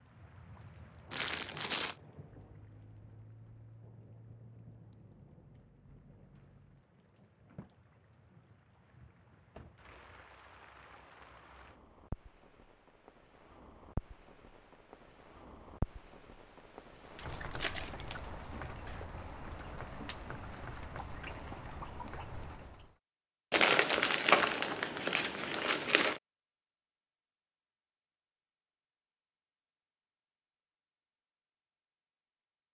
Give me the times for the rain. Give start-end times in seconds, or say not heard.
0.0-22.9.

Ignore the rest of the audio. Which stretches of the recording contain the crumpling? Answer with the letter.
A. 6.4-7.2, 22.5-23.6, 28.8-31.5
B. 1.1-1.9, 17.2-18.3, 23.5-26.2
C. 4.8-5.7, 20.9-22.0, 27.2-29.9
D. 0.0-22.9
B.